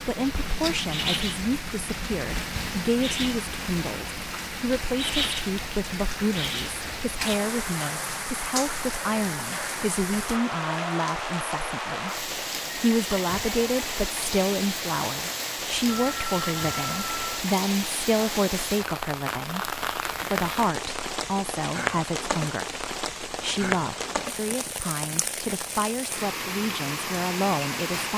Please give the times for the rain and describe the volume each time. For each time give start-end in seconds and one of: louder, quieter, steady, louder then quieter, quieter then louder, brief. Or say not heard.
0.0-28.1 steady.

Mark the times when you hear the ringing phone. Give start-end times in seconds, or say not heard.
15.8-17.4.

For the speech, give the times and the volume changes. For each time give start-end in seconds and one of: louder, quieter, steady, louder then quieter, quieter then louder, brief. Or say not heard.
0.1-28.1 steady.